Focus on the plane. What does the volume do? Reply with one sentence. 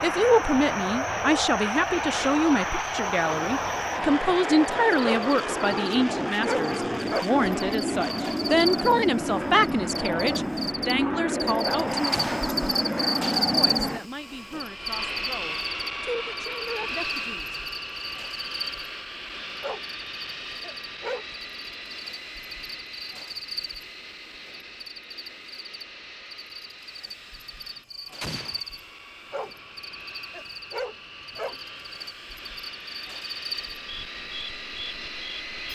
The volume of the plane goes down.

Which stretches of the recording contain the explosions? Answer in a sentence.
You can hear the explosions from 12.1 to 12.6 s and from 28.2 to 28.6 s.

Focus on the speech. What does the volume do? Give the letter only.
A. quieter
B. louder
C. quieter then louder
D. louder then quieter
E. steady
A.